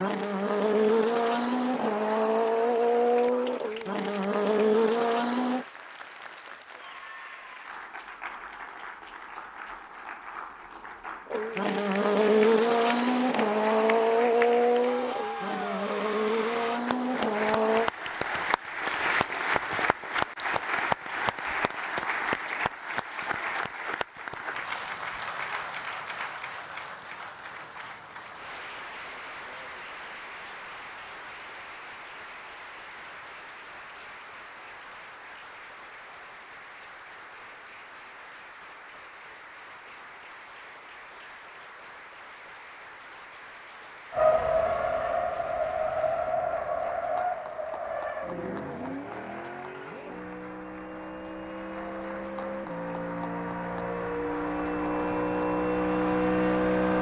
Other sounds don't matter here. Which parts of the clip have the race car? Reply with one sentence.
You can hear the race car from 0.0 to 5.7 s, from 11.3 to 17.9 s and from 44.1 to 56.9 s.